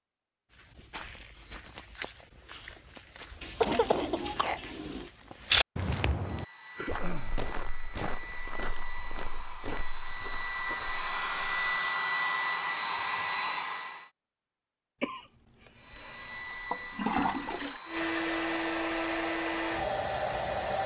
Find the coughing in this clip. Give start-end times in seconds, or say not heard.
3.6-4.8, 15.0-16.4.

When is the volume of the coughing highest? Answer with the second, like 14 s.
4 s.